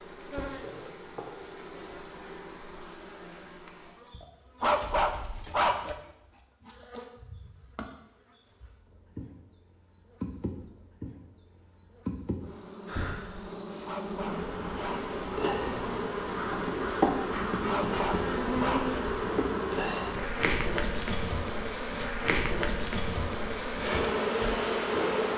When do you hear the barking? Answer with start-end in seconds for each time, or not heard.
4.6-6.0, 13.8-15.1, 17.6-18.9.